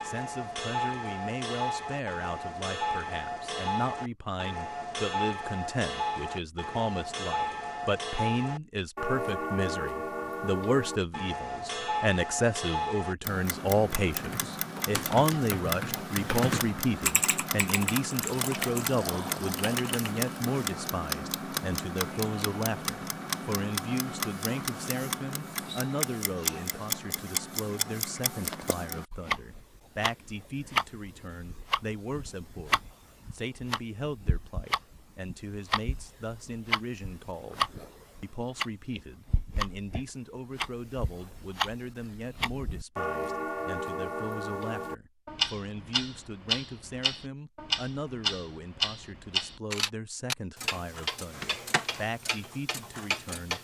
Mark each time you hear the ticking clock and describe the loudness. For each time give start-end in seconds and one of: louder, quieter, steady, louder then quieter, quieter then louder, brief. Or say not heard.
0.0-53.5 steady.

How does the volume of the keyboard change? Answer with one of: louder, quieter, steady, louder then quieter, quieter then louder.
louder then quieter.